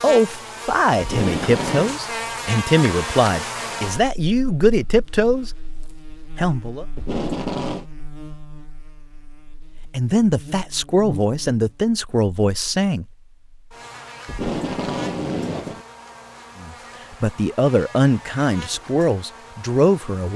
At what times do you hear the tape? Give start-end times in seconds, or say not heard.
1.0-1.9, 7.0-7.8, 14.2-15.8.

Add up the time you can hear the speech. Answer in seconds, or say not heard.
13 s.